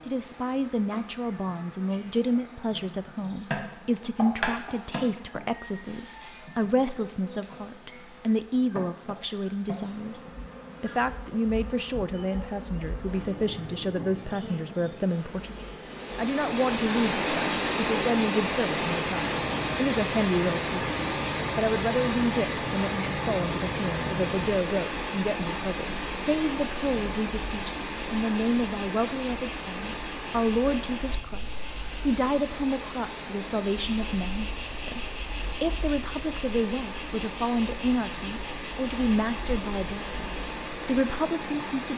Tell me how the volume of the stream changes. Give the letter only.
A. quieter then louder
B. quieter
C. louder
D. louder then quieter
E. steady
B.